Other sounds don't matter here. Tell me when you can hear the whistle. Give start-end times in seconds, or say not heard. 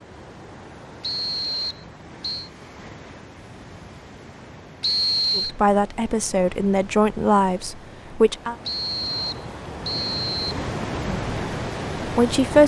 1.0-2.5, 4.8-5.5, 8.7-10.6.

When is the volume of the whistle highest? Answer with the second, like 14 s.
5 s.